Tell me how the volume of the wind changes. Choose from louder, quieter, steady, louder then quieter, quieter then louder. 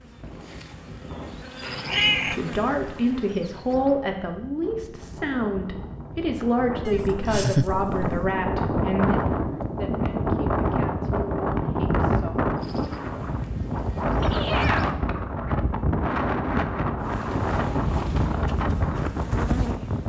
louder.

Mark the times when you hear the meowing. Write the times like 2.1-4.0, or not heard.
1.6-2.7, 6.8-8.3, 14.2-14.9.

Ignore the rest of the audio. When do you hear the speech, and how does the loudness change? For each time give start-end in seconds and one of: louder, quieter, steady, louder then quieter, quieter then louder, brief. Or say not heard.
2.3-12.9 quieter.